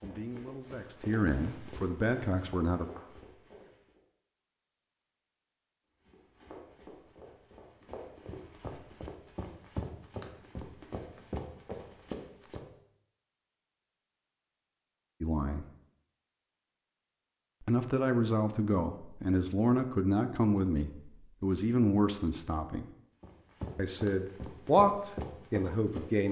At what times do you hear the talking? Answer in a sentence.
The talking can be heard from 0.0 to 2.9 s, from 15.2 to 15.7 s, from 17.6 to 22.9 s and from 23.8 to 26.2 s.